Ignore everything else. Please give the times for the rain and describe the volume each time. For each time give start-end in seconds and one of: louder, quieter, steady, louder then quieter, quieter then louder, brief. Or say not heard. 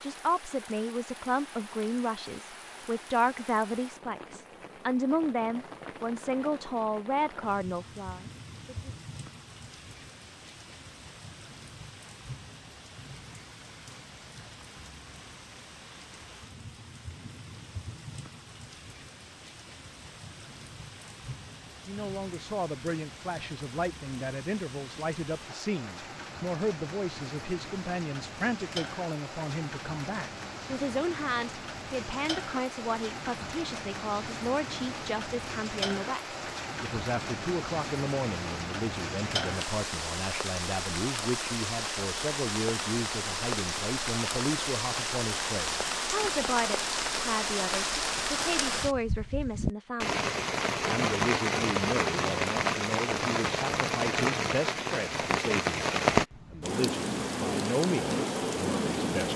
0.0-59.3 louder.